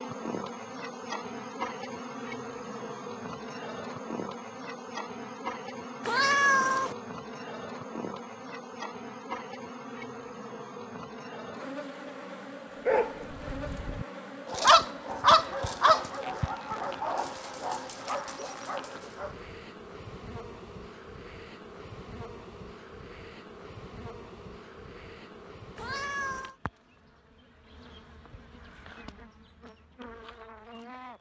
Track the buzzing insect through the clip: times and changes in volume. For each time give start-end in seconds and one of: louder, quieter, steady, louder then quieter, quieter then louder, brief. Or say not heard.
0.0-31.1 quieter.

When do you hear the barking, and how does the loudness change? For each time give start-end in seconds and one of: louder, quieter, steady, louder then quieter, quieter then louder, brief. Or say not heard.
12.8-19.4 louder then quieter.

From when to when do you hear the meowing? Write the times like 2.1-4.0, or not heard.
6.0-7.0, 25.8-26.6.